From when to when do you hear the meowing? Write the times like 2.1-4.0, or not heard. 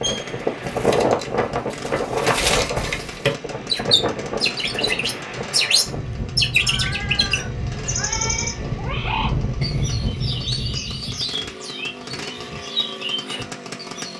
6.5-8.6.